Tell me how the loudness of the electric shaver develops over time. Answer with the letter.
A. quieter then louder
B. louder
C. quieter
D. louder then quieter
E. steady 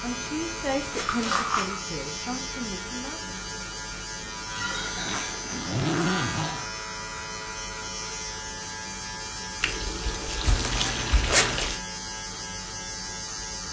E.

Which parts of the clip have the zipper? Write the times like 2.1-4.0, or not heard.
0.1-1.7, 5.0-6.7, 10.4-11.7.